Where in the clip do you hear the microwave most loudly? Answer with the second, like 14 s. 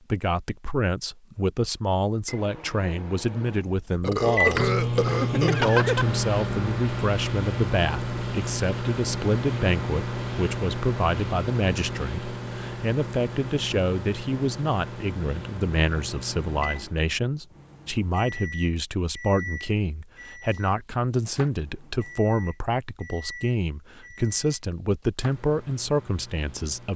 5 s.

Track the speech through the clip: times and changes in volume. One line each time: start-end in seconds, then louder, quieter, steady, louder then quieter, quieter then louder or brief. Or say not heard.
0.1-26.9 steady.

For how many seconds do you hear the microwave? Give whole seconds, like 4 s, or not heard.
25 s.